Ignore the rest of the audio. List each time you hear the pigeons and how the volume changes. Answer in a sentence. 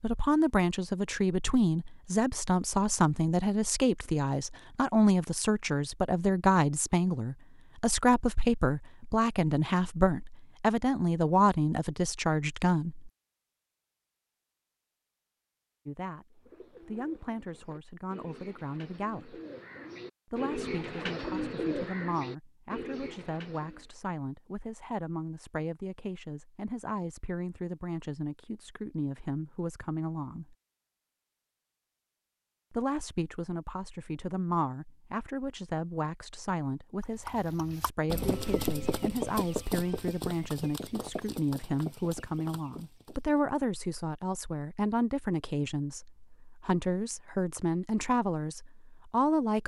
You can hear the pigeons from 16.4 to 23.9 s, getting louder then quieter.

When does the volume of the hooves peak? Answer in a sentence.
The loudest moment of the hooves is at 39 seconds.